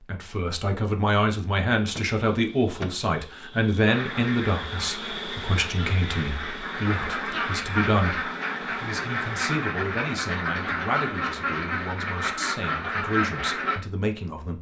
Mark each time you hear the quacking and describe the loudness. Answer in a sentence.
You can hear the quacking from 3.9 to 13.8 s, getting louder.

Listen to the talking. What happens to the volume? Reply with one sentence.
The volume of the talking goes down.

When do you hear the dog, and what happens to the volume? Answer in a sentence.
The dog can't be heard in this clip.